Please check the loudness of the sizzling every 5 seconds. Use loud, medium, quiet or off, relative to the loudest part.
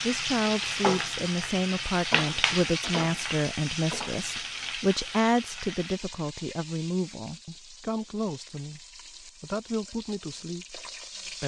loud, quiet, medium.